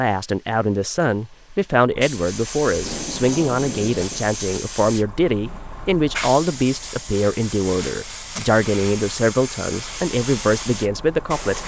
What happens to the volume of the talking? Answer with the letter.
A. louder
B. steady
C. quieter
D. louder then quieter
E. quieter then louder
B.